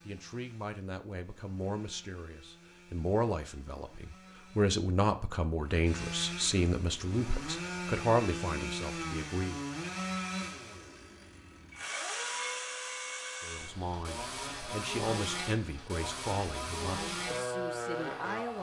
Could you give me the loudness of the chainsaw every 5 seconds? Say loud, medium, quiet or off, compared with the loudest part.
quiet, loud, loud, loud.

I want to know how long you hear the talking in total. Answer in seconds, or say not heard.
15 s.